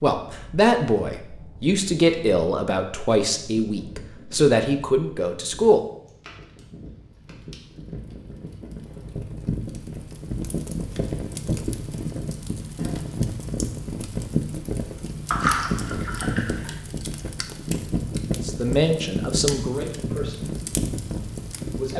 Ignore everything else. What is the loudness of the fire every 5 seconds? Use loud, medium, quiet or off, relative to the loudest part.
quiet, medium, loud, loud, loud.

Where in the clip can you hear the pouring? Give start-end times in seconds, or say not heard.
15.3-16.8.